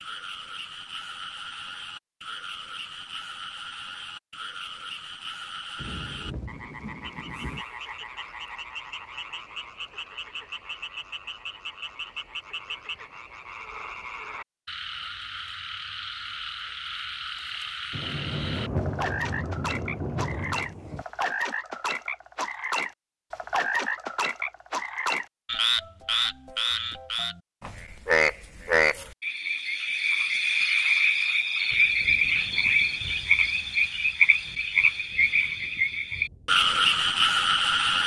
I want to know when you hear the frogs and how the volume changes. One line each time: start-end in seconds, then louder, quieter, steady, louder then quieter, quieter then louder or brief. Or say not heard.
0.0-38.0 louder.